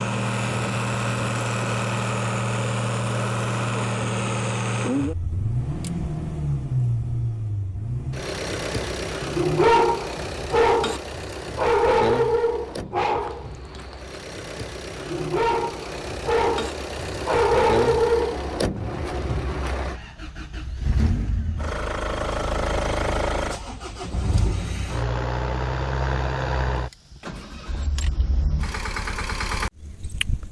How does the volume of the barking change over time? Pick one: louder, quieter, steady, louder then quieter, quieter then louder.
quieter then louder.